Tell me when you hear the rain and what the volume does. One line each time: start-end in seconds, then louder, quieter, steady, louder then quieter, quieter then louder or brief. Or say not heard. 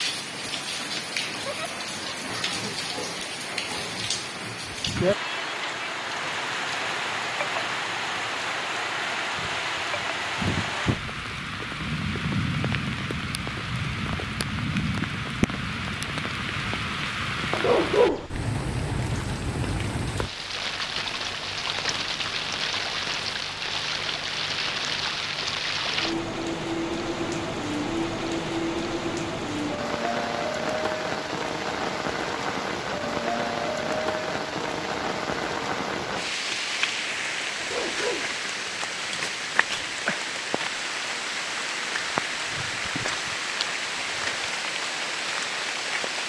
0.0-46.2 steady.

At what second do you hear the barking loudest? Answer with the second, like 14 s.
18 s.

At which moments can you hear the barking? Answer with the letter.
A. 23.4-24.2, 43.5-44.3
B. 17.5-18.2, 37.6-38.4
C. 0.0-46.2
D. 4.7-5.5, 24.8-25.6
B.